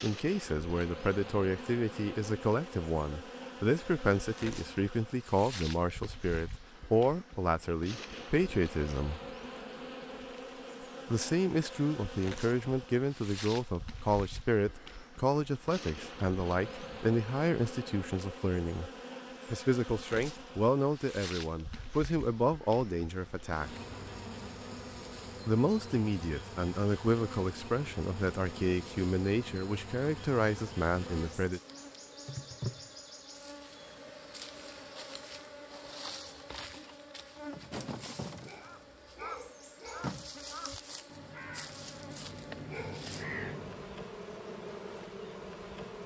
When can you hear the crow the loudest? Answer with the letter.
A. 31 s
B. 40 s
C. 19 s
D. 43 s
D.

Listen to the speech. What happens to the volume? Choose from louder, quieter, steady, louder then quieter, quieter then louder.
steady.